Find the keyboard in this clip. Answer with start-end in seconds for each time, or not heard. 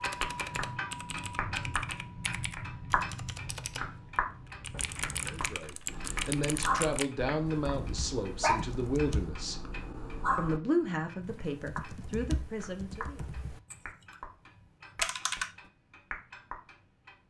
0.0-9.3, 11.2-15.6.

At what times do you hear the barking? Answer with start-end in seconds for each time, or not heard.
5.8-10.6.